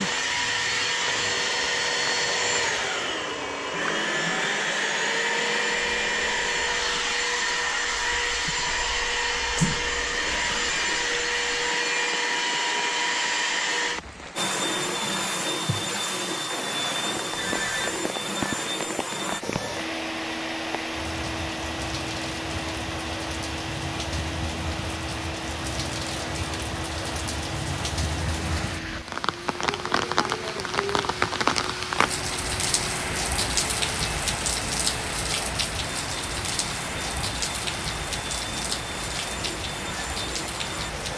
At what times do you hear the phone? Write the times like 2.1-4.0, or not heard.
17.3-17.9.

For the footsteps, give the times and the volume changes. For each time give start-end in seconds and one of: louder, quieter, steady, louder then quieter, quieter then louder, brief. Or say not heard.
not heard.